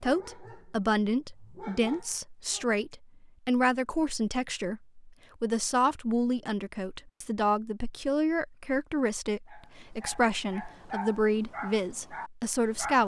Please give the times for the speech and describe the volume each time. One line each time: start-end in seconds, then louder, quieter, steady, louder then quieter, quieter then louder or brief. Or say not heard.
0.0-13.0 steady.